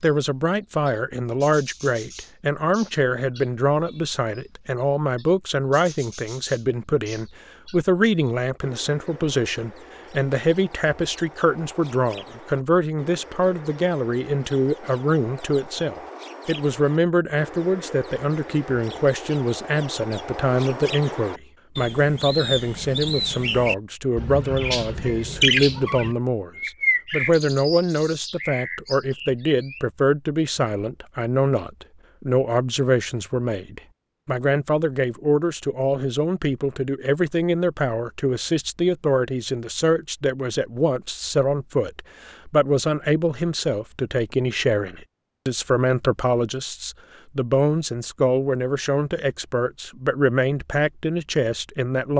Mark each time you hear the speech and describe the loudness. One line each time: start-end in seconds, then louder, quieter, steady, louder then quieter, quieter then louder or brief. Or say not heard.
0.0-52.1 steady.